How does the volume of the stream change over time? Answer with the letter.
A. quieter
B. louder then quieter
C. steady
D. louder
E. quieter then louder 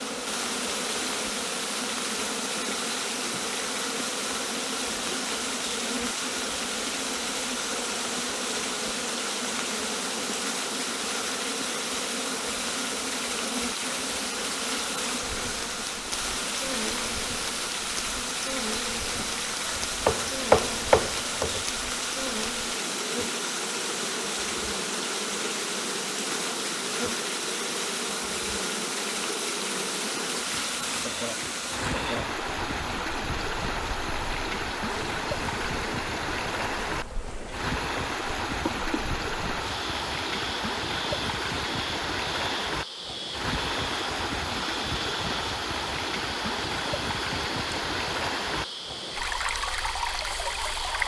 C.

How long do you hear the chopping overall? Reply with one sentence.
You can hear the chopping for 2 seconds altogether.